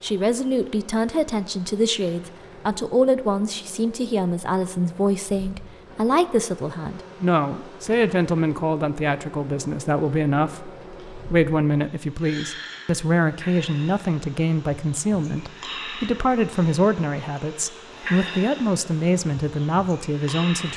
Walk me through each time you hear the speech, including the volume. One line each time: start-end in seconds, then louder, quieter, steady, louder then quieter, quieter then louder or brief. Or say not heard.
0.0-20.7 steady.